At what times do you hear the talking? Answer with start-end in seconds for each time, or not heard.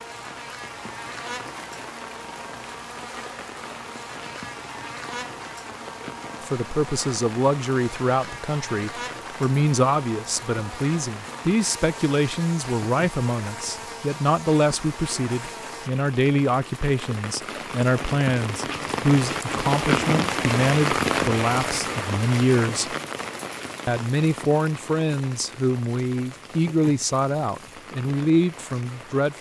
6.4-22.9, 23.9-29.3.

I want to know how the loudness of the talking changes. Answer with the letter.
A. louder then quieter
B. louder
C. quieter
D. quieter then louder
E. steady
E.